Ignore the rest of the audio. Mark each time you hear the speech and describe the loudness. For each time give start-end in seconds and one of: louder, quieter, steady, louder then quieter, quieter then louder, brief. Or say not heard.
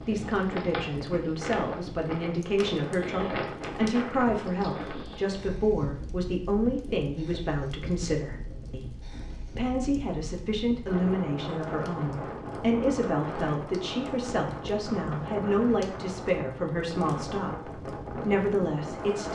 0.1-19.3 steady.